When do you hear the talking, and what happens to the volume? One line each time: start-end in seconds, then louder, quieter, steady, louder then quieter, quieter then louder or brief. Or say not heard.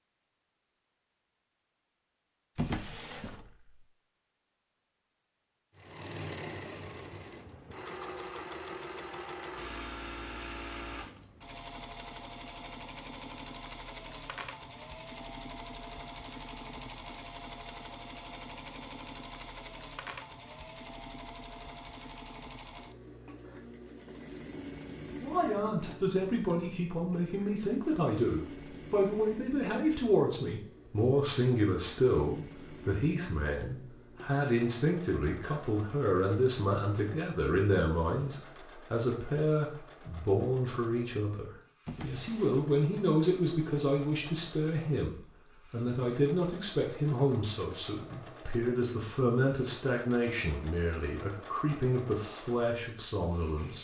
25.2-53.7 steady.